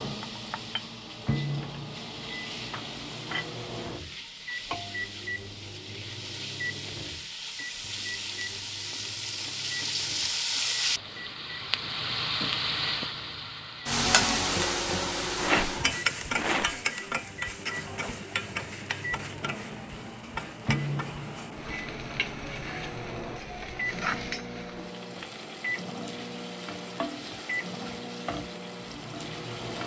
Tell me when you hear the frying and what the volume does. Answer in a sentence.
You can hear the frying from 0.0 to 29.8 s, getting louder then quieter.